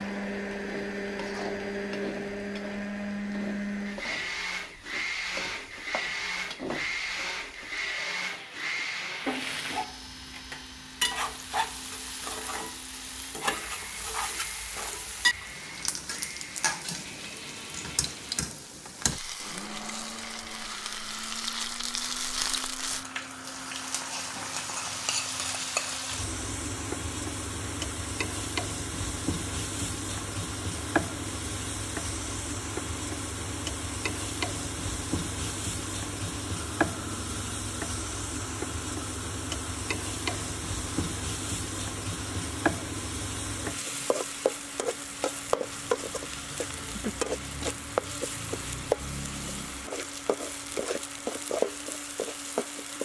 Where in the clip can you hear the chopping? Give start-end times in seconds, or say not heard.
not heard.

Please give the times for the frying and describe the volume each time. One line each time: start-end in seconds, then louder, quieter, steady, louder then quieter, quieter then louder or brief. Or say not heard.
0.0-53.0 louder.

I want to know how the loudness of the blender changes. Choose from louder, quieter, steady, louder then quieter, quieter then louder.
quieter.